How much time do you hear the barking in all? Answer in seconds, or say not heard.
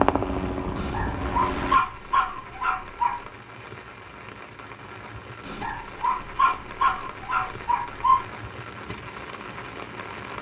5 s.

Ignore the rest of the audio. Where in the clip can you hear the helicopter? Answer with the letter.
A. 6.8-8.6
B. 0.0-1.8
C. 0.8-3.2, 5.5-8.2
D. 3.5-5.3
B.